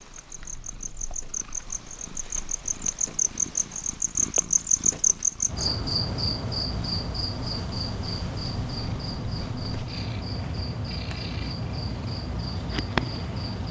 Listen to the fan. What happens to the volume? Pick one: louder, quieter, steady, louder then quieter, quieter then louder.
steady.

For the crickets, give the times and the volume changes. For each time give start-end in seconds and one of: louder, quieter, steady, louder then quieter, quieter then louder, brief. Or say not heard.
0.0-13.6 louder then quieter.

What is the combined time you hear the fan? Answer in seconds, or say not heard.
8 s.